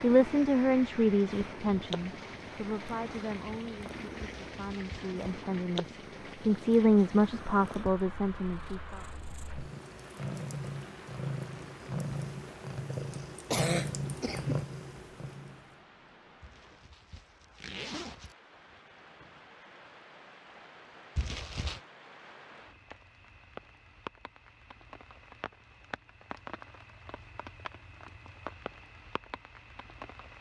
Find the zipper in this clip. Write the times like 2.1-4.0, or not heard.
4.2-5.2, 16.4-18.4, 21.1-21.8.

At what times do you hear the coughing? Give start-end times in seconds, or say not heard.
13.4-14.7.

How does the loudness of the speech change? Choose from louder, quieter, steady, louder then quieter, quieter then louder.
quieter then louder.